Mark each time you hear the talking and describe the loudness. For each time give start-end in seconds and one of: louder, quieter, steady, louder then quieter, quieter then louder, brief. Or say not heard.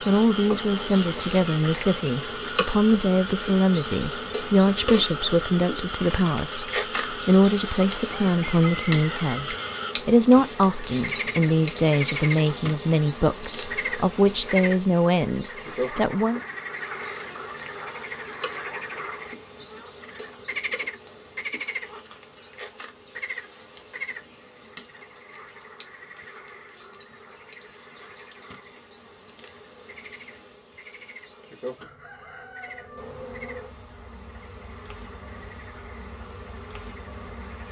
0.1-16.4 steady.